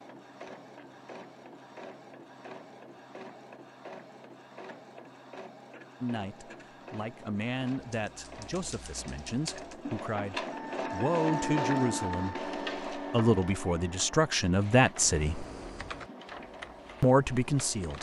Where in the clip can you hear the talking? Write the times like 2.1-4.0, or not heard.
6.0-15.4, 17.0-17.9.